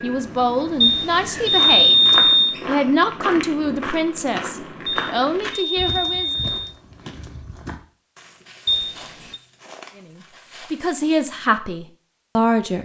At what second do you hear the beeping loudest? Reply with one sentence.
The volume of the beeping peaks at 2 seconds.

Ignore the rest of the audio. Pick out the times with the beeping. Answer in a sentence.
You can hear the beeping from 0.8 to 2.5 s, from 4.8 to 6.8 s and from 8.7 to 9.4 s.